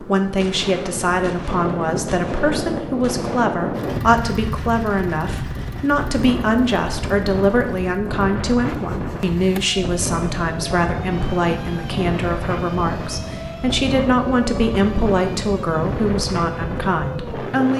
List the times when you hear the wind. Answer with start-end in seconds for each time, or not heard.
0.0-17.7.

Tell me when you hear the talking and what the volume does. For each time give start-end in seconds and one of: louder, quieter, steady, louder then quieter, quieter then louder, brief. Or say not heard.
0.0-17.7 steady.